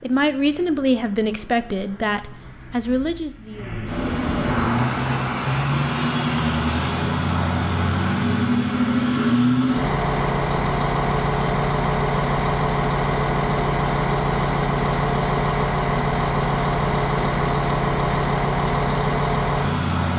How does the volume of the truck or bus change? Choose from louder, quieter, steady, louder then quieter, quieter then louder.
louder.